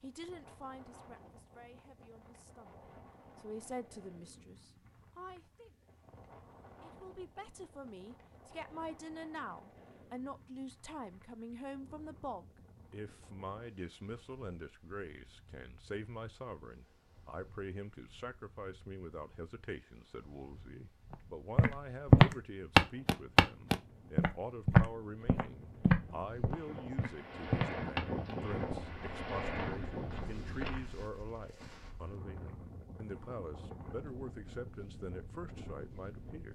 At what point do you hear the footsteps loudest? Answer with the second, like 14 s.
22 s.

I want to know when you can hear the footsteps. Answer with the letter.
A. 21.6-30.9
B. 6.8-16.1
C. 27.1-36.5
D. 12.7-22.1
A.